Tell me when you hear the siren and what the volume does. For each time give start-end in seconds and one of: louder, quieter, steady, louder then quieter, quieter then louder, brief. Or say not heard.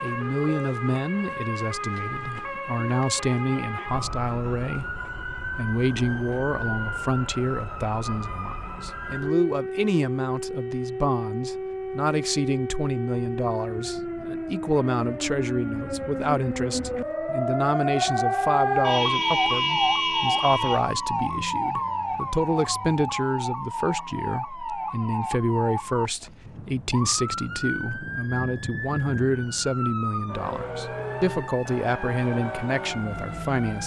0.0-33.8 louder then quieter.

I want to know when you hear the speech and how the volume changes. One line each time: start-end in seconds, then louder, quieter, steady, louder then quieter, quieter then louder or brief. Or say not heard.
0.0-33.8 steady.